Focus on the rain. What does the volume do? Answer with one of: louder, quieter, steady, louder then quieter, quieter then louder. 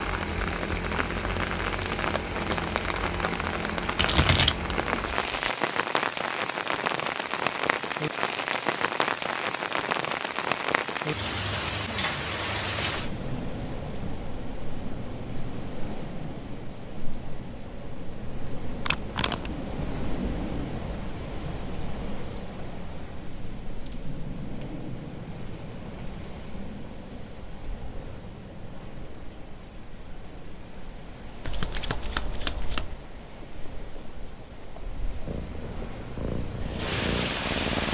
quieter.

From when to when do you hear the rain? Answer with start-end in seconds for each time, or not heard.
0.0-37.8.